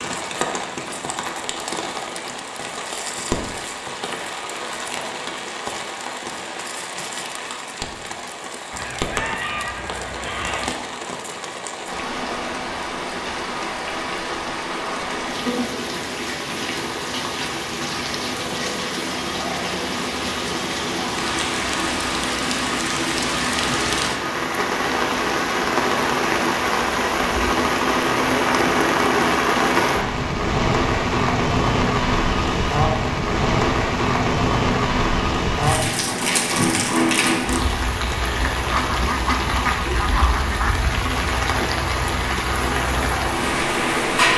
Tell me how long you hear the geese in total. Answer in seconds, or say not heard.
4 s.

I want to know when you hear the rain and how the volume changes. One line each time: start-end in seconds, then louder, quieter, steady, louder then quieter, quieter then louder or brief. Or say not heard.
0.0-44.3 louder.